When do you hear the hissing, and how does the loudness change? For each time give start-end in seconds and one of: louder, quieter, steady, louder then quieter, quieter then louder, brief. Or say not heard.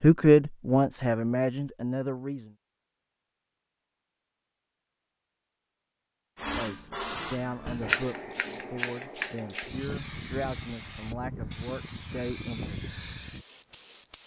6.3-14.2 quieter.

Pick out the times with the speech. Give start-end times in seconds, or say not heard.
0.0-2.5, 6.5-12.9.